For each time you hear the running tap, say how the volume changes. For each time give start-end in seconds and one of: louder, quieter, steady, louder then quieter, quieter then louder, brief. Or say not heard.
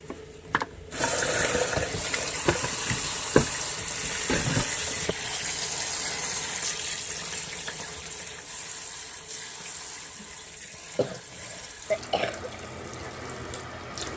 0.0-14.1 quieter.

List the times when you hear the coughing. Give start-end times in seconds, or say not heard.
10.9-12.5.